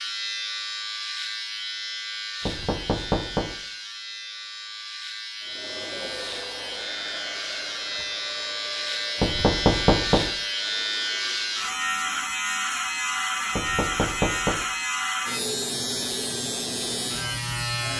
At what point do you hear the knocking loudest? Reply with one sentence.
The volume of the knocking peaks at 10 seconds.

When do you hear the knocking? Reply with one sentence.
The knocking can be heard from 2.5 to 3.5 s, from 9.2 to 10.3 s and from 13.6 to 14.7 s.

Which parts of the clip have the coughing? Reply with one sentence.
The coughing can't be heard in this clip.